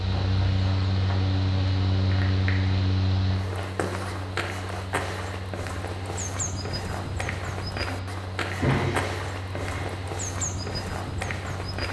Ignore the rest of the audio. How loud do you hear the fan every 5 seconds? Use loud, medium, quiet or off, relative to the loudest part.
loud, medium, medium.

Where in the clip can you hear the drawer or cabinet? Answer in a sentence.
You can hear the drawer or cabinet from 8.5 to 9.8 s.